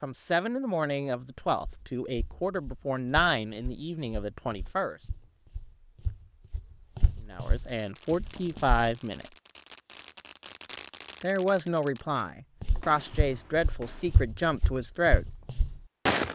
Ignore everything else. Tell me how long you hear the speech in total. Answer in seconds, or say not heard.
11 s.